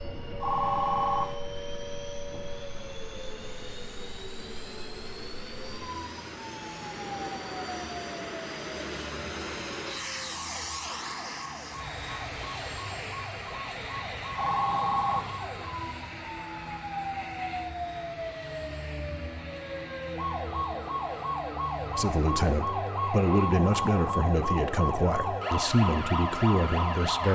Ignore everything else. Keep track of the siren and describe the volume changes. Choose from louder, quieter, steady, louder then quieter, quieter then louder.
louder.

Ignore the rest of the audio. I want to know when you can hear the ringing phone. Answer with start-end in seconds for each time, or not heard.
0.4-1.4, 14.3-15.3, 23.2-24.0.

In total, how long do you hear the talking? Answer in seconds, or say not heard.
5 s.